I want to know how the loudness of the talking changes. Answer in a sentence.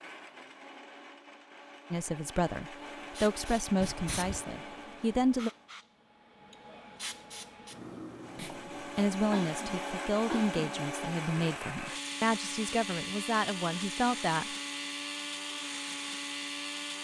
The loudness of the talking stays about the same.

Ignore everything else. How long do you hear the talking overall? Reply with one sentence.
The talking can be heard for 10 seconds in total.